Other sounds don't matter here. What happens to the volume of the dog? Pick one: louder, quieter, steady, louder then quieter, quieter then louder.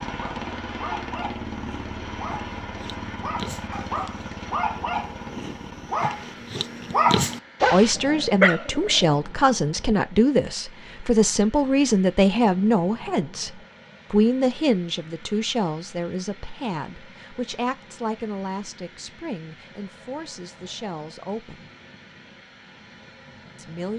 louder.